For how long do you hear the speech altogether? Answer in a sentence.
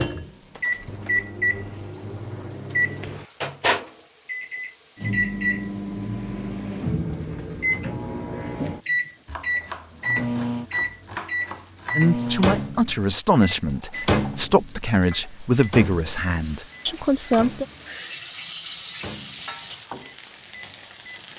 You can hear the speech for 6 seconds altogether.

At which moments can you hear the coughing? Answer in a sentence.
The coughing can't be heard in this clip.